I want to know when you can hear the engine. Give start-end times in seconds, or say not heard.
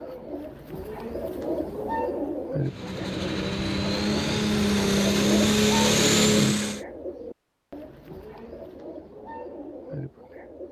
2.6-6.8.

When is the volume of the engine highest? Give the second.
6 s.